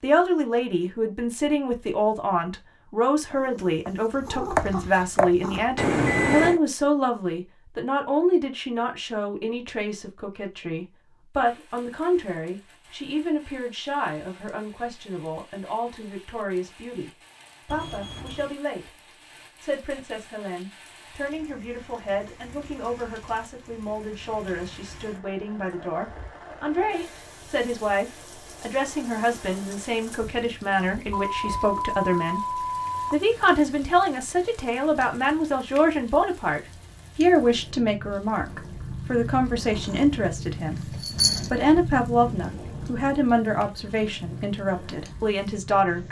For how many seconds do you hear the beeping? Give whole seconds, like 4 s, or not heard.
4 s.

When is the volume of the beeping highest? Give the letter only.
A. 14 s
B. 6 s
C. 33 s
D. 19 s
B.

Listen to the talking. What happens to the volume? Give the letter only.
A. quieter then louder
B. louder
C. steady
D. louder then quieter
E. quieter
A.